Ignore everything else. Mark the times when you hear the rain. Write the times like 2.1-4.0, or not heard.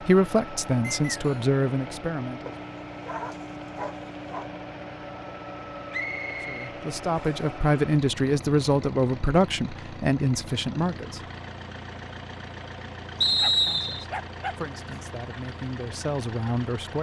not heard.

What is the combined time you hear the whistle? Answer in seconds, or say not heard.
3 s.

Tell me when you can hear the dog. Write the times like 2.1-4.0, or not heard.
2.5-4.5, 13.3-15.0.